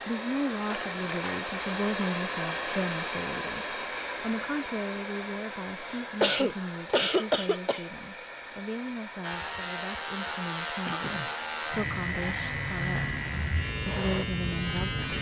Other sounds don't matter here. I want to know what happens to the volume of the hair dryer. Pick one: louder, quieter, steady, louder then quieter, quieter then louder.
quieter.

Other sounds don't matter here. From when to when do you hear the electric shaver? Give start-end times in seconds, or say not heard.
9.2-15.1.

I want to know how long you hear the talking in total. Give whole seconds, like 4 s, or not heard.
15 s.